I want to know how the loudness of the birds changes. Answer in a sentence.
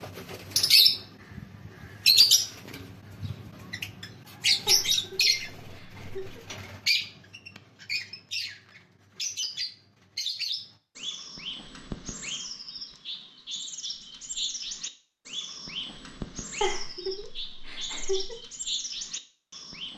The loudness of the birds goes down.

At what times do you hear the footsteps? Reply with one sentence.
The footsteps can't be heard in this clip.